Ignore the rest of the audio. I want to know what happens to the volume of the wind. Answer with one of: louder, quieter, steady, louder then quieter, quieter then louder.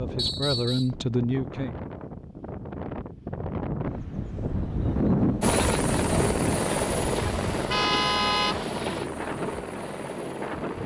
louder then quieter.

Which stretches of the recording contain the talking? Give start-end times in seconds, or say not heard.
0.0-1.8.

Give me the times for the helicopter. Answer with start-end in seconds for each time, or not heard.
5.4-10.8.